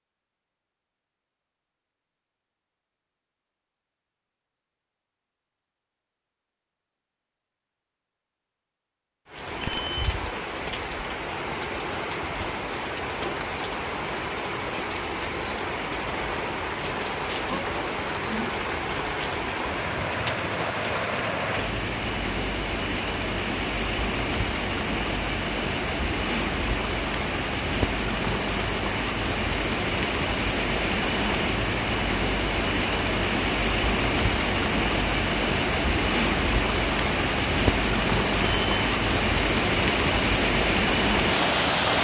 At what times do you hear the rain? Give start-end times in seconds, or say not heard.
9.2-41.9.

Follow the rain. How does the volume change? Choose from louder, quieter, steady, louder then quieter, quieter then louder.
louder.